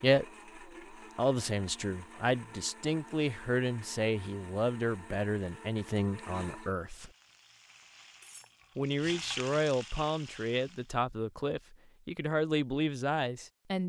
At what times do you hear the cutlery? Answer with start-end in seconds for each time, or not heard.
8.2-8.7.